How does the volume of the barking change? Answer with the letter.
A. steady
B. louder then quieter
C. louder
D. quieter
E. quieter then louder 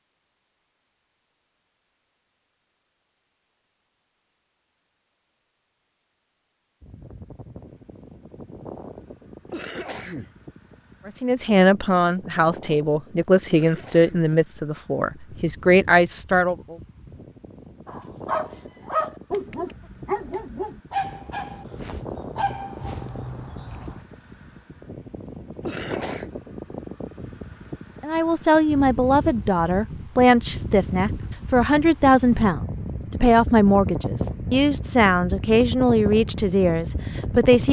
D.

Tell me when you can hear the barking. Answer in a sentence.
The barking can be heard from 17.9 to 24.1 s.